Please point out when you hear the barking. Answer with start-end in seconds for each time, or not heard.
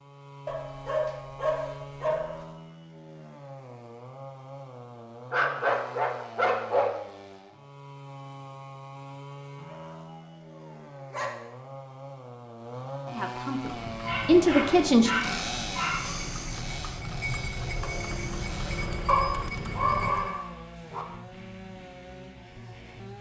0.5-2.4, 5.3-6.9, 9.7-11.4, 14.1-16.2, 19.1-21.1.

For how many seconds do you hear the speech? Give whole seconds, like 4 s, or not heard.
2 s.